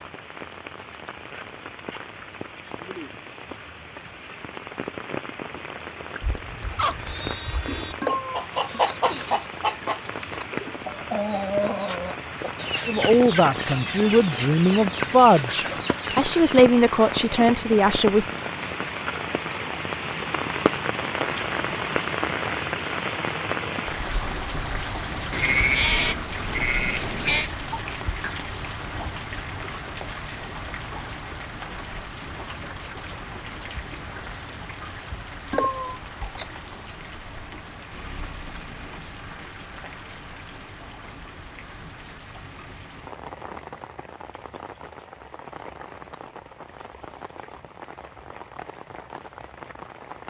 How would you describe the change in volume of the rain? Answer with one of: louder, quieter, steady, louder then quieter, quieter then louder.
louder then quieter.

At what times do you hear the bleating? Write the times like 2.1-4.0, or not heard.
6.2-8.0, 25.3-27.5.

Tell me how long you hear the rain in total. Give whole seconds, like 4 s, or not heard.
50 s.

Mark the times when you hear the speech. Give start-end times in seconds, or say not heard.
12.8-18.2.